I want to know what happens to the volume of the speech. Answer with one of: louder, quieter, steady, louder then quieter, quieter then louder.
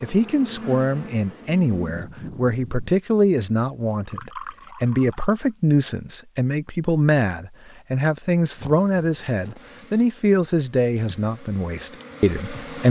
steady.